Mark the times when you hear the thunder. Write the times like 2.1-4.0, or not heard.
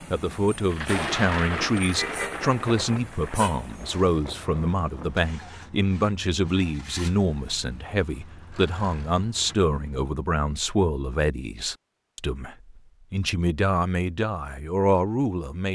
0.7-5.3.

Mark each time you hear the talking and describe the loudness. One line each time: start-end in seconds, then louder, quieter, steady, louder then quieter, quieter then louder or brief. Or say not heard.
0.1-15.7 steady.